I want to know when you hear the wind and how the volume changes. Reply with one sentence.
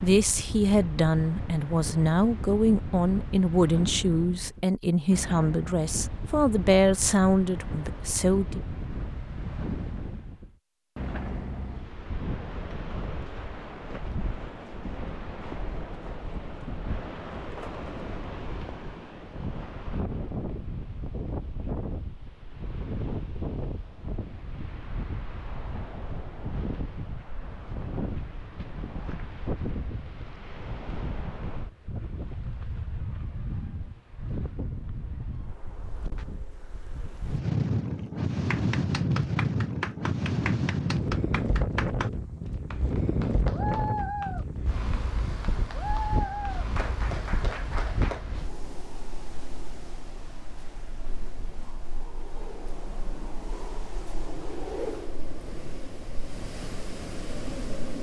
The wind can be heard from 0.0 to 57.9 s, getting louder then quieter.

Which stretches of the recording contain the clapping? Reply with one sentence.
You can hear the clapping from 38.3 to 42.1 s and from 42.7 to 48.2 s.